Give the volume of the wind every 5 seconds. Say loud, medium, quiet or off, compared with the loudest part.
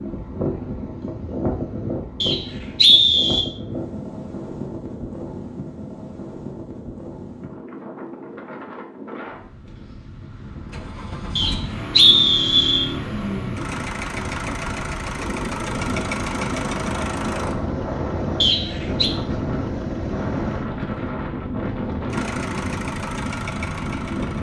loud, medium, medium, loud, loud.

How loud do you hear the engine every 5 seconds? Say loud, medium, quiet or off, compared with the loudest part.
off, off, loud, loud, loud.